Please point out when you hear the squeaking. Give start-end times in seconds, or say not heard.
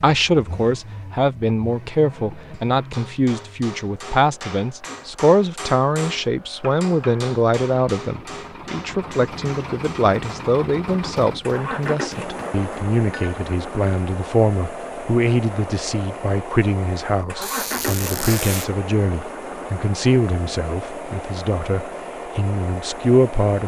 17.4-18.7.